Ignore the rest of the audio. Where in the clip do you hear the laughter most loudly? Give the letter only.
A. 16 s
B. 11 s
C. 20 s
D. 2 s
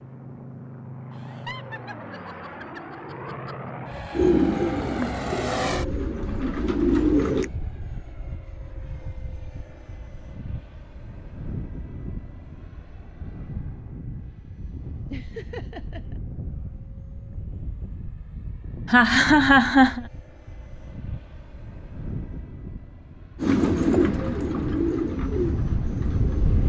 C.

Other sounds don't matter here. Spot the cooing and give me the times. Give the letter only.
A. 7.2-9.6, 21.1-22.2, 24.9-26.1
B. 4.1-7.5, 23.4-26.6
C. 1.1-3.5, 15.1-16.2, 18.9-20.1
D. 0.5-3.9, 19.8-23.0
B.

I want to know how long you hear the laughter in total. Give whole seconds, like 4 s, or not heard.
5 s.